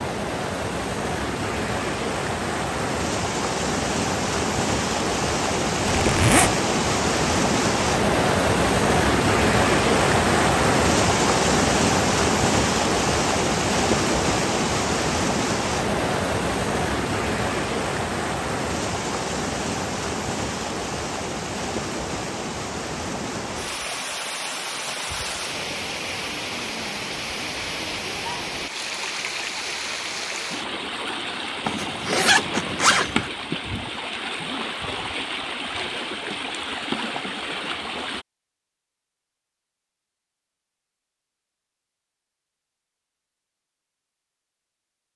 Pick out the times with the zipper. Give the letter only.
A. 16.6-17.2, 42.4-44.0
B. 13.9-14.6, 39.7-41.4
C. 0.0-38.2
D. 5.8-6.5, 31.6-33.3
D.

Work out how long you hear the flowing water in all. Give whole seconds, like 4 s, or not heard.
38 s.